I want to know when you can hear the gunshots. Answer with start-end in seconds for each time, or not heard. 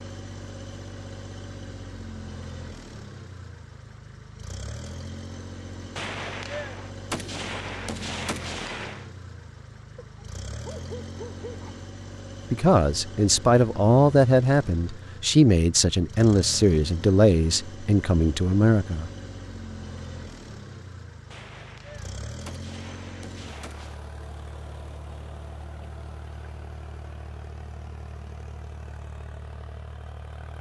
6.0-9.1, 21.3-24.0.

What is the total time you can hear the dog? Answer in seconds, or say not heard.
2 s.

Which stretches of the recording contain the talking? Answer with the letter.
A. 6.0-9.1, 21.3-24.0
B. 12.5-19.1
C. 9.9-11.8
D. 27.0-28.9
B.